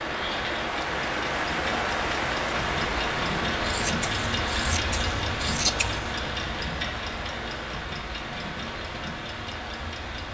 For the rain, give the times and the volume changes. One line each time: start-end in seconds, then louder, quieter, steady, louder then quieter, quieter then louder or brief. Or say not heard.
0.0-10.2 quieter.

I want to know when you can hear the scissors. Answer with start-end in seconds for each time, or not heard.
3.6-6.2.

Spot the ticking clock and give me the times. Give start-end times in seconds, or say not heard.
0.0-10.2.